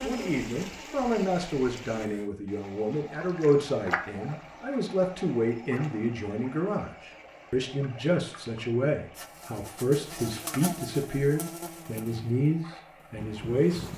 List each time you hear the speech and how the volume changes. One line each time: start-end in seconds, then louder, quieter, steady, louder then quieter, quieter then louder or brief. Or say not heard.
0.0-13.8 steady.